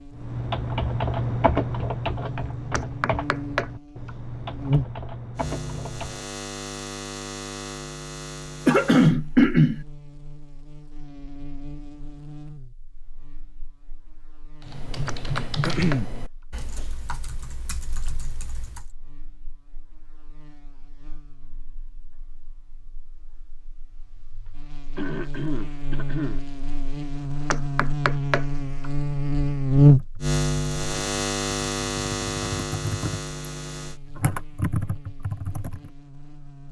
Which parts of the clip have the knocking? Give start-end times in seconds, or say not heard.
2.7-4.1, 15.1-16.1, 27.5-28.9.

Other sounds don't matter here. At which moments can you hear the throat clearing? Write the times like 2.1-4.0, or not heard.
8.7-9.8, 15.7-16.1, 24.9-26.4.